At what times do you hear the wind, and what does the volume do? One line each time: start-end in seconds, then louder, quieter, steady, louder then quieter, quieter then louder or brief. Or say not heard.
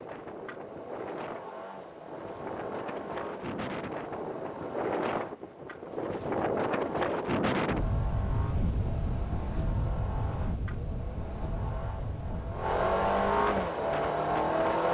0.0-14.8 louder then quieter.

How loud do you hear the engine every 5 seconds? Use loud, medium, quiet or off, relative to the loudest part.
quiet, quiet, loud.